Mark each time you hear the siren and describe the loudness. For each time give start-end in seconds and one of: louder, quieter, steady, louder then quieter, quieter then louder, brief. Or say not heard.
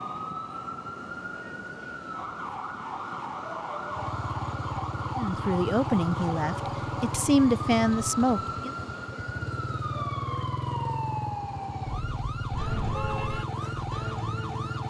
0.0-14.8 steady.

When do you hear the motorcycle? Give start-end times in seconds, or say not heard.
3.9-14.8.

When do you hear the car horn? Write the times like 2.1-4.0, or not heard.
12.5-13.4.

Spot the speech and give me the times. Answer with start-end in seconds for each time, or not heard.
5.2-8.7.